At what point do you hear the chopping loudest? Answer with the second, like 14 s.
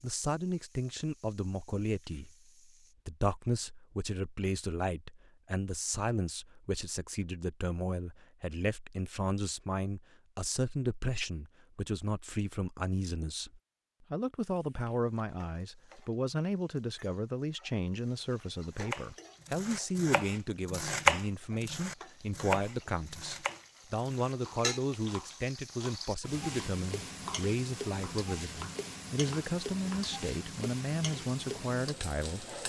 21 s.